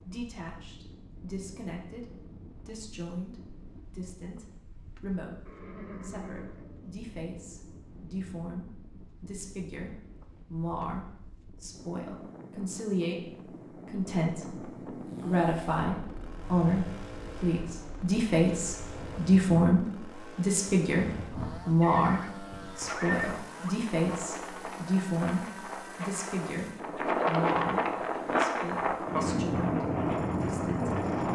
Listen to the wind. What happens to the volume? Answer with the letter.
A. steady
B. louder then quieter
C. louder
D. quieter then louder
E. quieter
C.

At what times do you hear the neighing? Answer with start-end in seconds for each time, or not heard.
5.5-7.0, 21.8-23.8.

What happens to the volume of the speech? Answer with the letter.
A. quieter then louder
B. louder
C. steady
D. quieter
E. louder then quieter
E.